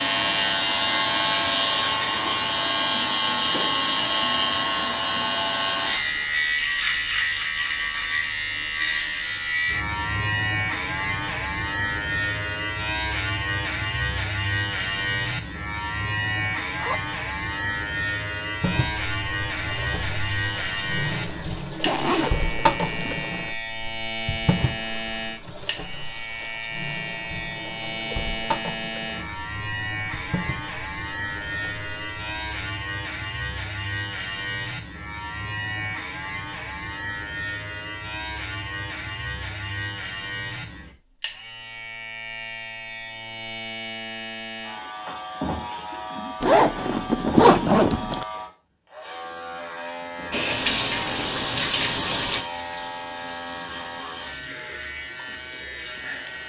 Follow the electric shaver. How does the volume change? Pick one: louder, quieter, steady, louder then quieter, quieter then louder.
quieter.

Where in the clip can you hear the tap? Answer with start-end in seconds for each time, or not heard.
18.6-32.7, 50.3-56.4.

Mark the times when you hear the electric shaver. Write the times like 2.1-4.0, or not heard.
0.0-56.4.